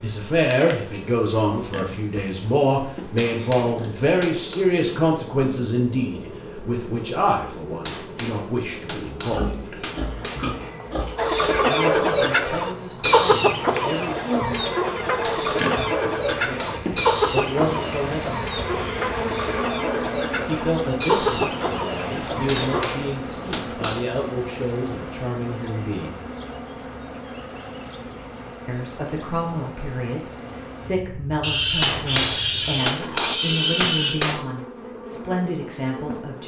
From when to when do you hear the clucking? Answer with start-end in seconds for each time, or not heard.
11.2-23.0.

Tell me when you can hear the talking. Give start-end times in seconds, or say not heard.
0.0-9.8, 11.7-14.3, 16.2-18.6, 20.4-26.2, 28.6-36.4.